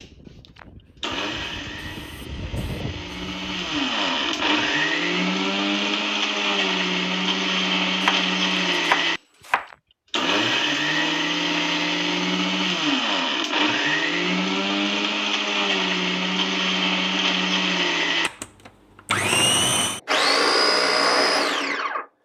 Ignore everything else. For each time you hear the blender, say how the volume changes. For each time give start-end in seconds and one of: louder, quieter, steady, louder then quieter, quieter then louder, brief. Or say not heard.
0.0-22.1 louder.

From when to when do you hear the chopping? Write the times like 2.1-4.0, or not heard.
8.0-9.7.